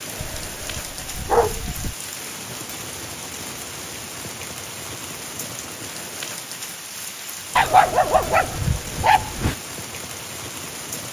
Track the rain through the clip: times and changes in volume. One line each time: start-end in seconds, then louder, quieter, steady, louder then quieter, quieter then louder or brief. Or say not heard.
0.0-11.0 steady.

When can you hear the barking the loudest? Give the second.
8 s.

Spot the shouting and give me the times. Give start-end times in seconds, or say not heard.
not heard.